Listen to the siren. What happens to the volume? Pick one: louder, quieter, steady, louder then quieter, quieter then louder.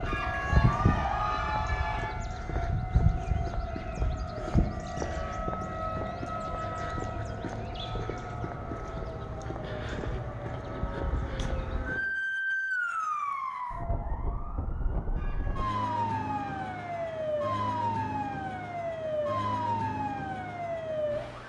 steady.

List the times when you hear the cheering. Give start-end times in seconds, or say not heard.
0.1-2.1, 15.2-17.1.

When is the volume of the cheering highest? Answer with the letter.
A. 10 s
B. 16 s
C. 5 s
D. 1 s
D.